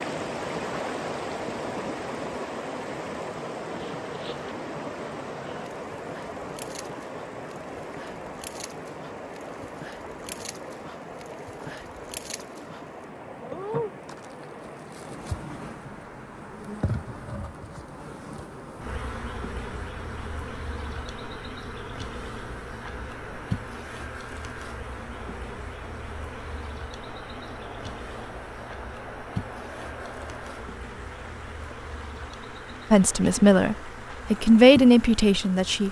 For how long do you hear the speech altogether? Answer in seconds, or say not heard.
3 s.